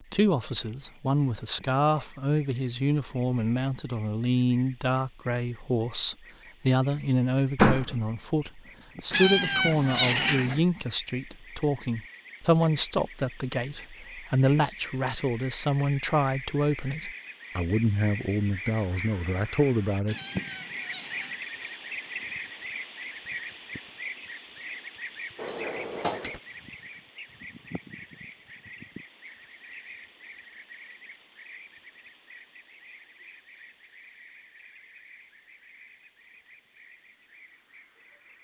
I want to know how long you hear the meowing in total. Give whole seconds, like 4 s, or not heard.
3 s.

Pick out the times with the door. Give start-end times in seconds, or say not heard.
7.5-8.0, 25.4-26.4.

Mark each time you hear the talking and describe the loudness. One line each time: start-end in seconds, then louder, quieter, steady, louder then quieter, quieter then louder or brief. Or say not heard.
0.1-20.1 steady.